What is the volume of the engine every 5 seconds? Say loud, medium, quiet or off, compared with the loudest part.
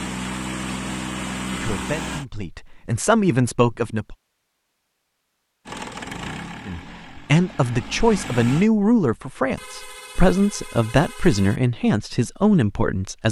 loud, medium, off.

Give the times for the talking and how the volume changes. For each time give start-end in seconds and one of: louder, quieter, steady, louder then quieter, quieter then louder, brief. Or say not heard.
1.5-4.2 brief
6.7-13.2 steady.